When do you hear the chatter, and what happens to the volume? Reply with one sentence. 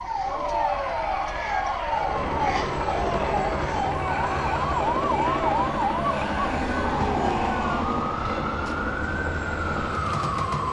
You can hear the chatter from 0.0 to 7.8 s, at a steady volume.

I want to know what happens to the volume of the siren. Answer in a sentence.
The volume of the siren stays about the same.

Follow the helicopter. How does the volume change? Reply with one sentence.
The loudness of the helicopter stays about the same.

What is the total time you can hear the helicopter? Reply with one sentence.
You can hear the helicopter for 9 seconds altogether.